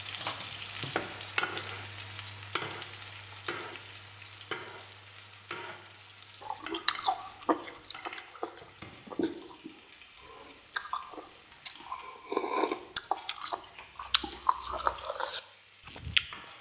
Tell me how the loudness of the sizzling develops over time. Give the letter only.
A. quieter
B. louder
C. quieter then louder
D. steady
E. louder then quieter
A.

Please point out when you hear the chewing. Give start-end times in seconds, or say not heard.
6.4-16.4.